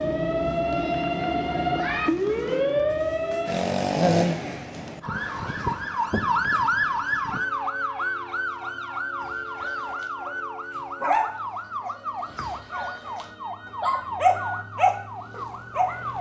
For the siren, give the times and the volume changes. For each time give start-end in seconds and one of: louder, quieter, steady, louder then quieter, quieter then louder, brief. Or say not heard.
0.0-16.1 quieter.